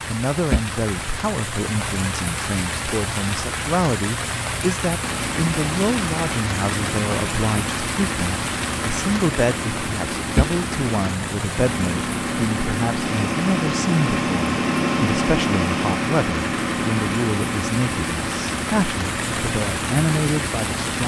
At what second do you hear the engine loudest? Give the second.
15 s.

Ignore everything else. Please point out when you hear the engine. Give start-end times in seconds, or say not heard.
5.0-21.0.